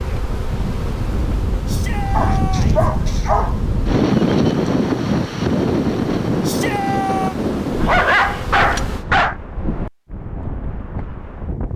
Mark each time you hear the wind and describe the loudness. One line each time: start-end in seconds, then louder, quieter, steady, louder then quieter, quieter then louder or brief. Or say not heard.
0.0-11.7 louder then quieter.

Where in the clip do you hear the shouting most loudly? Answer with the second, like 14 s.
7 s.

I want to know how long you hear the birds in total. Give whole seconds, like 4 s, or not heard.
not heard.